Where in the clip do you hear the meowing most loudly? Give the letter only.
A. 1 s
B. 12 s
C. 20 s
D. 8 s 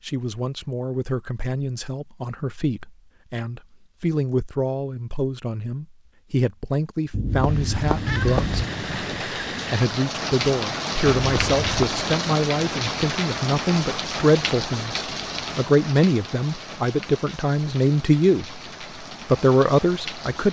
D.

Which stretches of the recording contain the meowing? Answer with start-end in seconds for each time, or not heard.
7.1-8.7, 11.2-12.1.